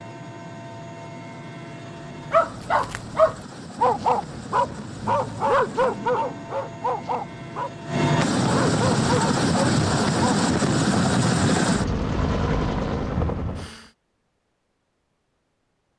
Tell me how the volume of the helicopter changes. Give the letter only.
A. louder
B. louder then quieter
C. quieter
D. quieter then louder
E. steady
A.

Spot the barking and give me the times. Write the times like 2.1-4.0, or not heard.
2.3-10.4.